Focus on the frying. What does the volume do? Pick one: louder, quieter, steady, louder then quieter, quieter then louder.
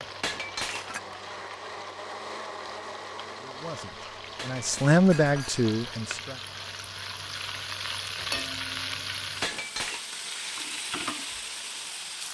louder.